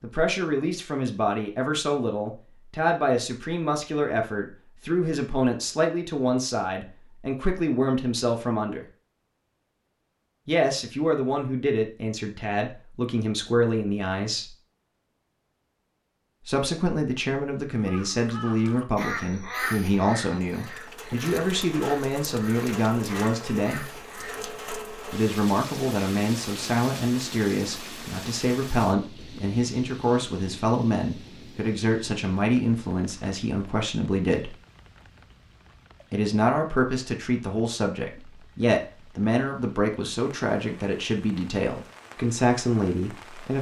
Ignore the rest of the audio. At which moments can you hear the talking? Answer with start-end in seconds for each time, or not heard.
0.0-8.8, 10.4-14.5, 16.4-23.9, 25.1-34.5, 36.1-43.5.